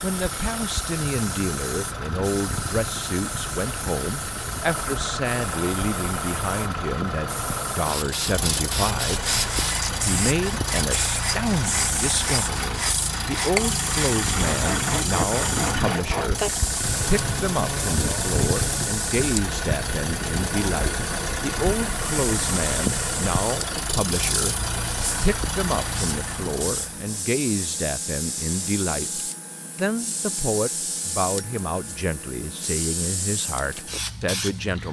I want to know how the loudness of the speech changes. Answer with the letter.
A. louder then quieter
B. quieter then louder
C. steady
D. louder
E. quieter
C.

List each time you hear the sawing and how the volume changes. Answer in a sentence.
You can hear the sawing from 9.2 to 18.9 s, at a steady volume.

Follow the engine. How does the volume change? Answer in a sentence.
The loudness of the engine goes up.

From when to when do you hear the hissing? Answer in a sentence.
You can hear the hissing from 0.0 to 34.8 s.